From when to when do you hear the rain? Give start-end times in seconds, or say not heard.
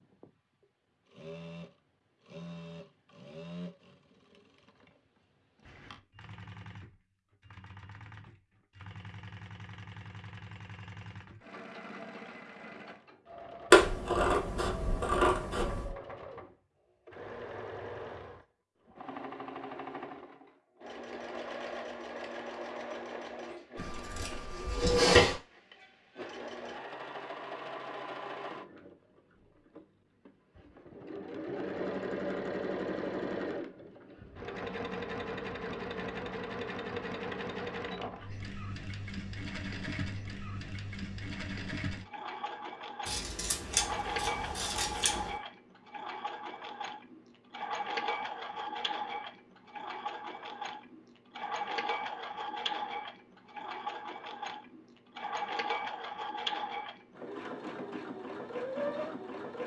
not heard.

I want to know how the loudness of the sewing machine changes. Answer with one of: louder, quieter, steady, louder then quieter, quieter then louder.
louder.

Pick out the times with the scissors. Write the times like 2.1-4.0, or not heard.
13.7-15.9, 23.8-25.4, 43.0-45.4.